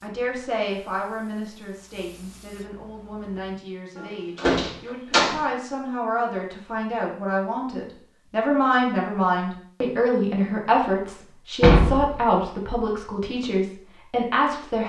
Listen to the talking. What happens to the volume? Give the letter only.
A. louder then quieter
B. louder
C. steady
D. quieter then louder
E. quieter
B.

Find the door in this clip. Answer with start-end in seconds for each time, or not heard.
4.0-5.3, 11.6-12.2.